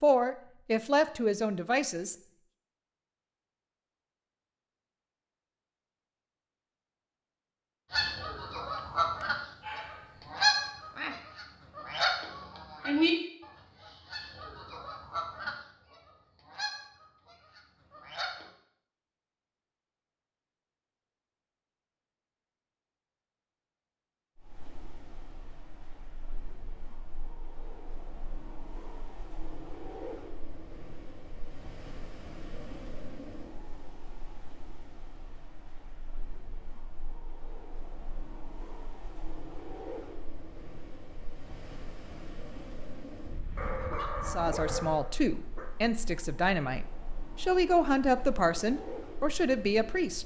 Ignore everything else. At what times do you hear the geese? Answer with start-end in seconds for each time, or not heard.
7.9-18.4.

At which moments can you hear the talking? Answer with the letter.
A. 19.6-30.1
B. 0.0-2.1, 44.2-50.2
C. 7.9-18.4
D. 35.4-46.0
B.